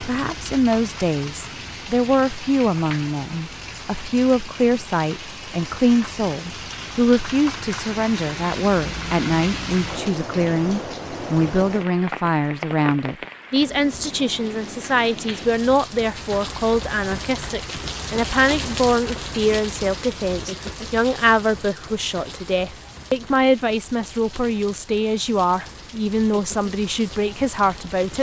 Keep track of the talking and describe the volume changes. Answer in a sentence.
The volume of the talking stays about the same.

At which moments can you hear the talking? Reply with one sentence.
You can hear the talking from 0.0 to 28.1 s.